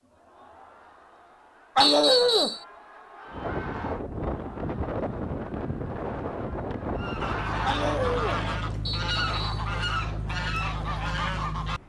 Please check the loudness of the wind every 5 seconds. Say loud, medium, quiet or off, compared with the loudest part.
loud, loud, quiet.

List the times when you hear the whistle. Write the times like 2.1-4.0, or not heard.
1.8-2.6, 8.8-9.7.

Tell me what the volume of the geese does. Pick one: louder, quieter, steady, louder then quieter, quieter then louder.
steady.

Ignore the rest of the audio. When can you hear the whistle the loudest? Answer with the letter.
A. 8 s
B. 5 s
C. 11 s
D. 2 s
D.